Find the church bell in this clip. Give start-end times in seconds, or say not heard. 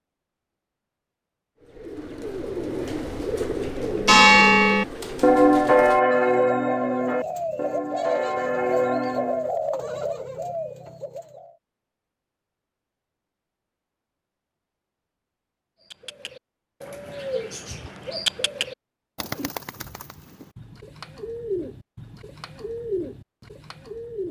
3.9-9.5.